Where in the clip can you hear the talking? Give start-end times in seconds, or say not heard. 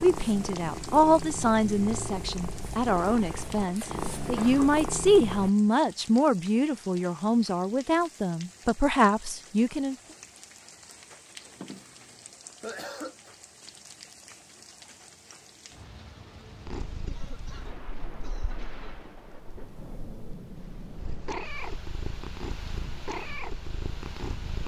0.0-9.9.